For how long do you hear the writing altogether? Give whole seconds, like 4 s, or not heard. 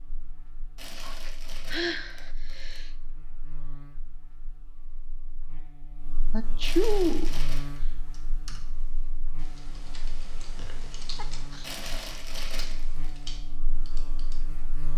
not heard.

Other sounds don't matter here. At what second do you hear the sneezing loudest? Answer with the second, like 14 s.
7 s.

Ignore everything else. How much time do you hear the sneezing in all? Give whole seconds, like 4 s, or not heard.
4 s.